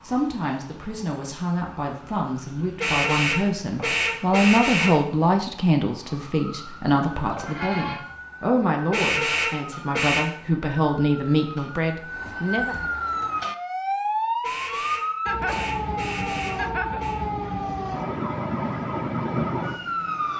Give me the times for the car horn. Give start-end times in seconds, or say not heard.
2.8-5.0, 8.9-10.2, 14.4-17.2.